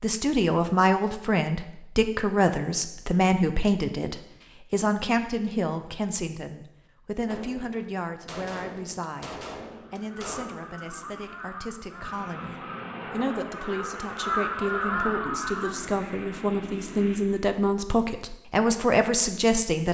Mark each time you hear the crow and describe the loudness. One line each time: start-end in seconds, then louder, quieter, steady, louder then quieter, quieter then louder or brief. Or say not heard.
9.9-15.8 louder.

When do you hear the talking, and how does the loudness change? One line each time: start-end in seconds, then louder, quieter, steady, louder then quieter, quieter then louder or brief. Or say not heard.
0.0-19.9 quieter then louder.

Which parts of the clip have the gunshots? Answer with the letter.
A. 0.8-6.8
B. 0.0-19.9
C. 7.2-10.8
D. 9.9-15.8
C.